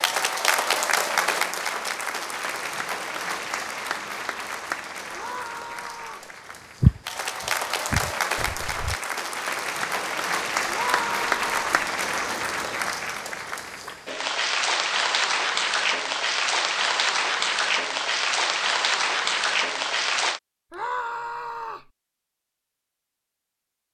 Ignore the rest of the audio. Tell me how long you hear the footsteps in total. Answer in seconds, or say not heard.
2 s.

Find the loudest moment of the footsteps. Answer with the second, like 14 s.
7 s.